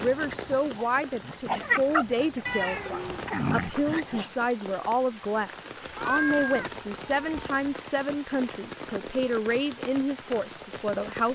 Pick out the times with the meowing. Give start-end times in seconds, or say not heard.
2.5-3.3, 6.0-7.8.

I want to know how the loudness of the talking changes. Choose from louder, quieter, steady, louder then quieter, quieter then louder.
steady.